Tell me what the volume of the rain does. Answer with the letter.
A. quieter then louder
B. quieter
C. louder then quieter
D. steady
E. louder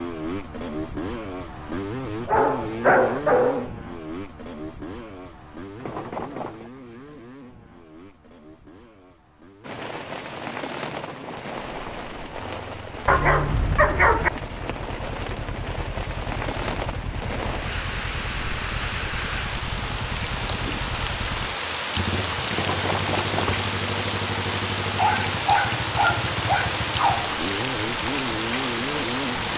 E.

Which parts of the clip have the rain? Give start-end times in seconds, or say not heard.
9.6-29.5.